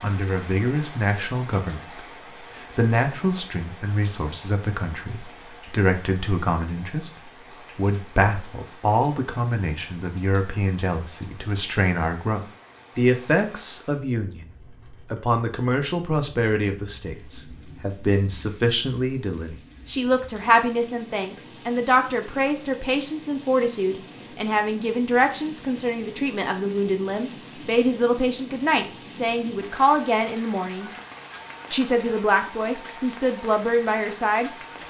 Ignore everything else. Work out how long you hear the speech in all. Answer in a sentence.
You can hear the speech for 33 seconds altogether.